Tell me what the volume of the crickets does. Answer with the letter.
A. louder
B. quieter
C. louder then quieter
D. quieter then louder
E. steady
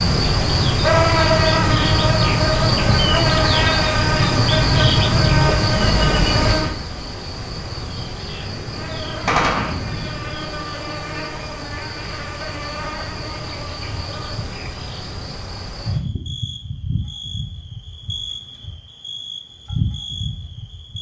B.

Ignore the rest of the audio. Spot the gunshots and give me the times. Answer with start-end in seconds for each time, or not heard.
9.2-10.3.